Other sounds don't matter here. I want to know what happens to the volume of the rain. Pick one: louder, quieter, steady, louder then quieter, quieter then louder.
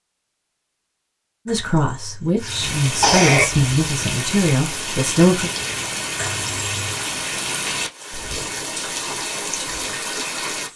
steady.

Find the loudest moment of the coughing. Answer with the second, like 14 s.
3 s.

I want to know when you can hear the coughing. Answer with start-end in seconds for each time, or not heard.
1.4-3.5, 6.2-7.0.